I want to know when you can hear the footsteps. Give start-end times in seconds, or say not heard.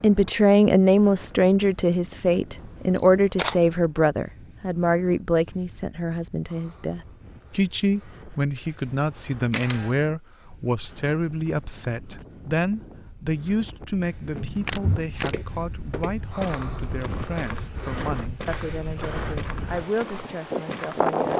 14.3-21.1.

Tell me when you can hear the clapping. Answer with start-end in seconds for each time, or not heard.
not heard.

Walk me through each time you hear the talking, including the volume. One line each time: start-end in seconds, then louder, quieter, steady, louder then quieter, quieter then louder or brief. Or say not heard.
0.0-21.3 quieter.